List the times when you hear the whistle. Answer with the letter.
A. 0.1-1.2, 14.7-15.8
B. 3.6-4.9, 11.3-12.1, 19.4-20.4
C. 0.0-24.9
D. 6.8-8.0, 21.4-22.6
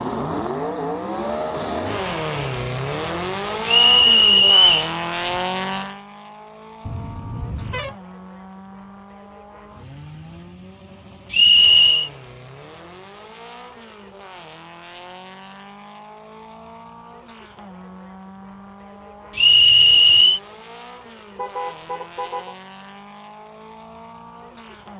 B.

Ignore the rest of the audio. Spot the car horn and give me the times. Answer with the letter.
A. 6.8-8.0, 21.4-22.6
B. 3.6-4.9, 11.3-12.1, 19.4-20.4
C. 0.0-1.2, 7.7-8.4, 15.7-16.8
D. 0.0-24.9
A.